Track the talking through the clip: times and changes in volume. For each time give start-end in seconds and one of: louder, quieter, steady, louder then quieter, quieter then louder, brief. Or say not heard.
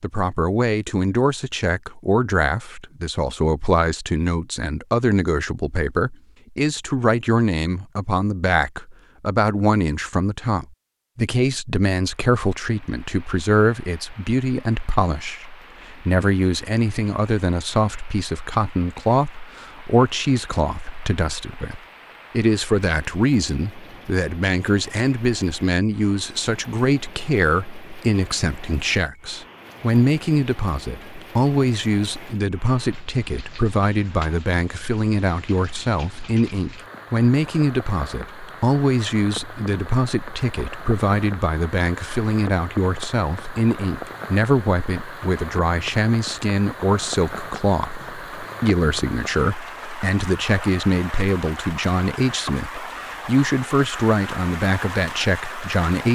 0.0-56.0 steady.